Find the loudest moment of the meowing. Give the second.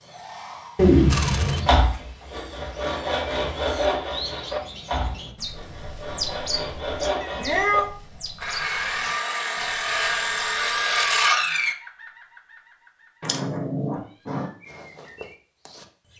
1 s.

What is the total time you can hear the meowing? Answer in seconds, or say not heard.
3 s.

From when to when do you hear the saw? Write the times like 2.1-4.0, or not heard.
1.1-11.8.